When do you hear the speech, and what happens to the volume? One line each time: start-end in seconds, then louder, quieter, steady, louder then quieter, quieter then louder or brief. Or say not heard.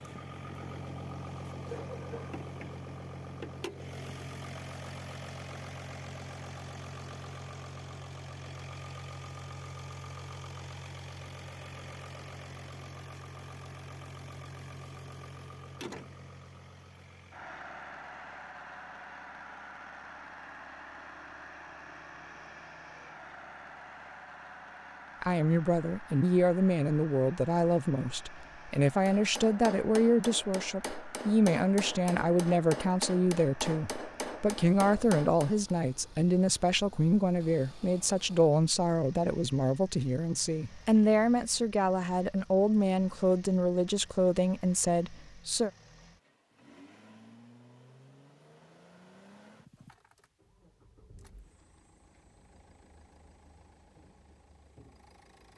25.2-45.7 steady.